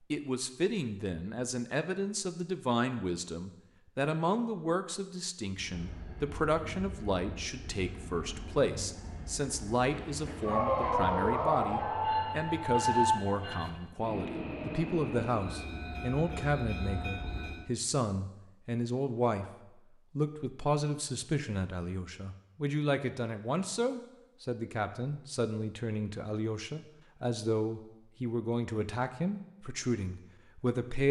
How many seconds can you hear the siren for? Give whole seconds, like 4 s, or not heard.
3 s.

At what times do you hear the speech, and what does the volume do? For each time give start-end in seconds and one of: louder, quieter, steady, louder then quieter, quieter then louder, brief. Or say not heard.
0.1-19.4 steady
20.1-31.0 steady.